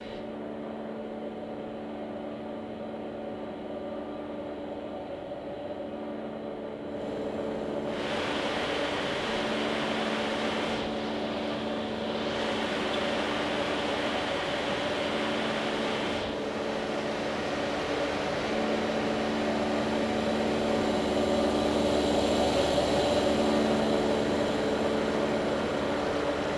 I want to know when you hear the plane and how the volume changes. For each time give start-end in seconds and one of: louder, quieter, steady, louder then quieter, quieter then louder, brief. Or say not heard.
0.0-26.5 louder.